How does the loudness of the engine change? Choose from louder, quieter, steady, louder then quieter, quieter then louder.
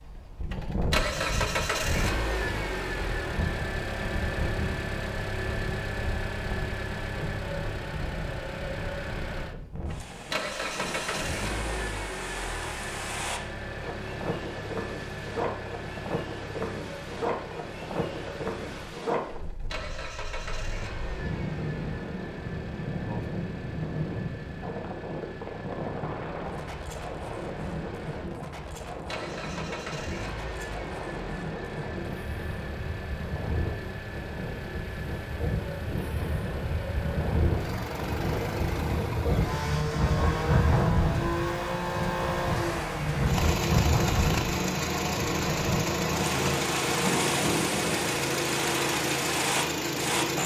quieter then louder.